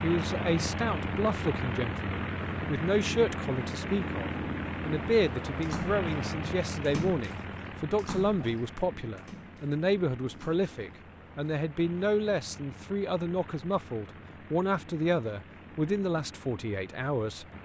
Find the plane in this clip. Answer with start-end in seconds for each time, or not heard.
0.0-17.5.